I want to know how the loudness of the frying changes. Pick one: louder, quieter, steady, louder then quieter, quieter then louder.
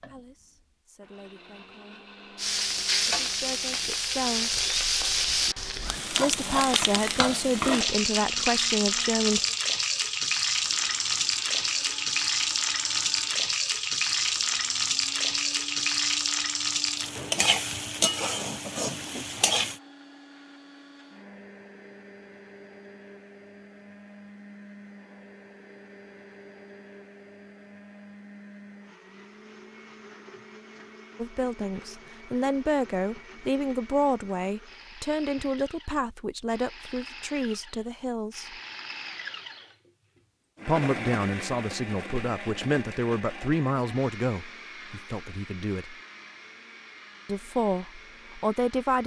steady.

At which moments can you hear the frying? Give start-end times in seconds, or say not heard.
2.4-19.8.